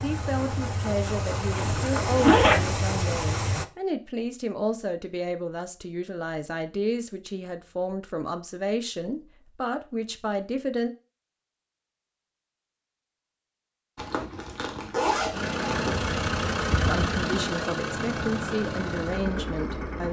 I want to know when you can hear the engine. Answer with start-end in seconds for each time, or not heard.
0.0-3.6, 15.3-20.0.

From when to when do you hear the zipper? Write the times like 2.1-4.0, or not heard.
1.5-2.8, 13.9-15.9.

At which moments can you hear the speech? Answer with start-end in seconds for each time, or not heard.
0.0-10.9, 16.9-20.0.